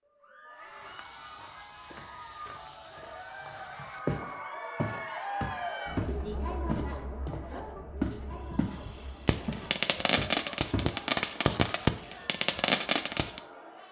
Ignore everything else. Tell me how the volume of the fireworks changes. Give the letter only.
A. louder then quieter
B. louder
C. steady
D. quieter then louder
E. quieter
B.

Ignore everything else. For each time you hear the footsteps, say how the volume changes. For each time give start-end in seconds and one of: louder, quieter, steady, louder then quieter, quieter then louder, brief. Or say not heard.
0.6-8.8 louder
9.4-11.6 brief.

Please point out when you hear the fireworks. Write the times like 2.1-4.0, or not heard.
8.3-13.4.